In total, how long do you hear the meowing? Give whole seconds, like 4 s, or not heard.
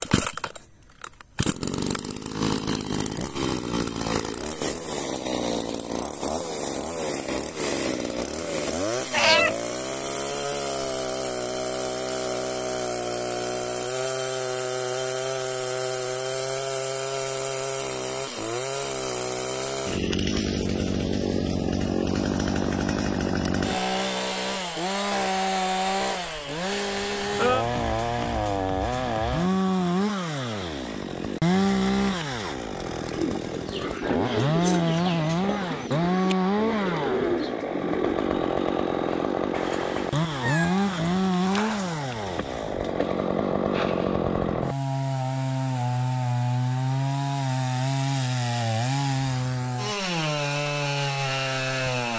3 s.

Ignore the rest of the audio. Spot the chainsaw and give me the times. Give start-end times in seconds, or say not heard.
0.0-52.1.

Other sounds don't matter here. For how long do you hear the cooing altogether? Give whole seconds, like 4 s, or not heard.
5 s.